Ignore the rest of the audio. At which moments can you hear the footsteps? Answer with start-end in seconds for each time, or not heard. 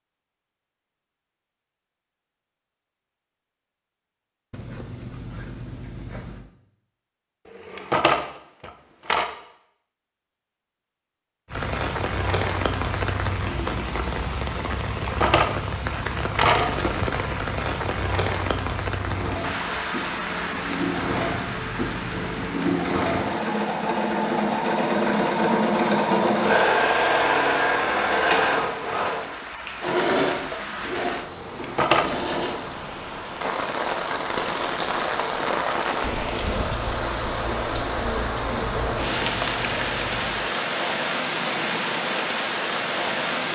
not heard.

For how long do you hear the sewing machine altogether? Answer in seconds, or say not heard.
14 s.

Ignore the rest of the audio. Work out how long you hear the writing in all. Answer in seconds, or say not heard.
6 s.